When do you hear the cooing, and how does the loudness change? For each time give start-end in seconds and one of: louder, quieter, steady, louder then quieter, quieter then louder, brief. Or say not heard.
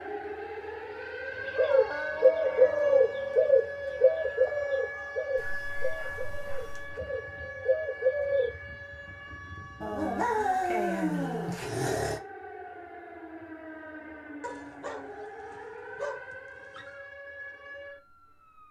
1.6-8.5 quieter then louder.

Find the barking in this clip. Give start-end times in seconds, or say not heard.
1.6-3.1, 5.3-7.0, 9.8-12.2, 14.4-17.0.